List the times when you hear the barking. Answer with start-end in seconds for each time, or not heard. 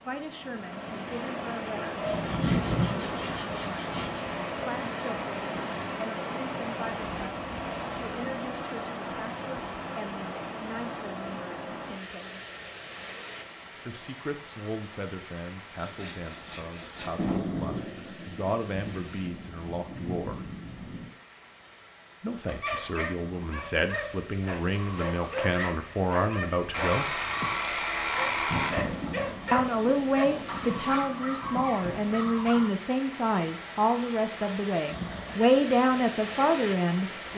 22.4-32.7.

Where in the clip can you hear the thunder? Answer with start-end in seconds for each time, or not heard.
2.0-4.2, 17.1-21.1, 28.4-32.7.